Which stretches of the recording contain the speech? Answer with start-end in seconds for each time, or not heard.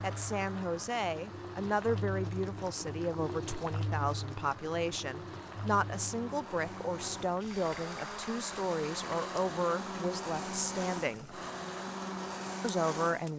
0.0-11.4, 12.6-13.3.